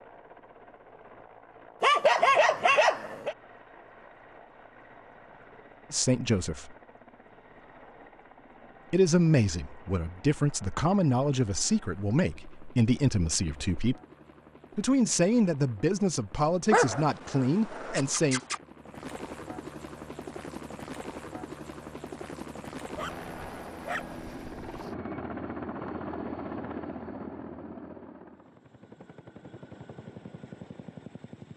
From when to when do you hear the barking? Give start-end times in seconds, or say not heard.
1.8-3.4, 16.7-18.6, 22.9-24.9.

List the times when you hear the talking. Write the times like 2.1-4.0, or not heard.
5.9-6.8, 8.9-13.9, 14.8-18.4.